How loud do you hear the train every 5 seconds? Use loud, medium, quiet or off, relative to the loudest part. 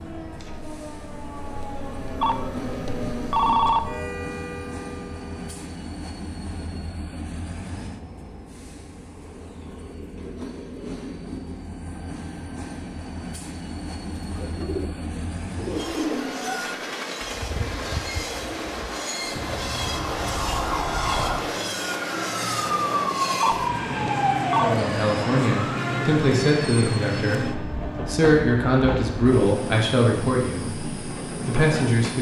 medium, medium, medium, loud, loud, loud, loud.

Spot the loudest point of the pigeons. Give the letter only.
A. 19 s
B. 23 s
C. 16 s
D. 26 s
C.